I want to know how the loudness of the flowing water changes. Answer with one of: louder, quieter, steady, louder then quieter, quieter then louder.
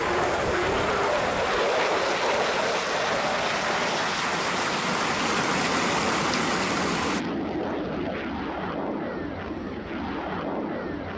louder.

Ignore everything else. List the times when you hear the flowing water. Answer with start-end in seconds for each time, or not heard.
0.0-7.2.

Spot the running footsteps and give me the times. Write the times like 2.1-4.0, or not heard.
not heard.